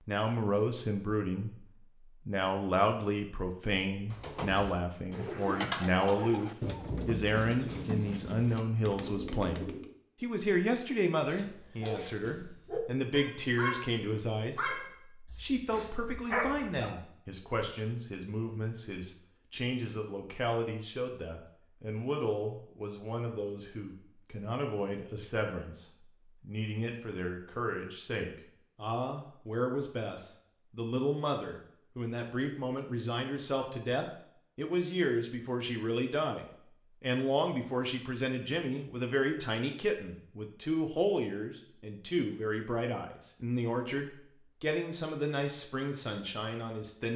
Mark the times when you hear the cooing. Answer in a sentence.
You can hear the cooing from 4.1 to 9.9 s.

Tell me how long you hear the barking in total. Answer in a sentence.
The barking can be heard for 6 seconds in total.